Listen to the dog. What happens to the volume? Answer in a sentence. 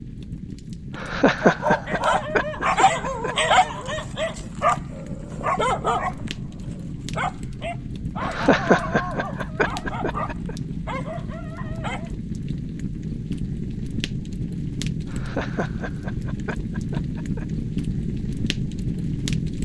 The volume of the dog goes down.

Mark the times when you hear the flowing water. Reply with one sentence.
The flowing water can't be heard in this clip.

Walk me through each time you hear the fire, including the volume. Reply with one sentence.
The fire can be heard from 0.0 to 19.6 s, getting louder.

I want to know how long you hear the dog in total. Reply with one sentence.
You can hear the dog for 11 seconds altogether.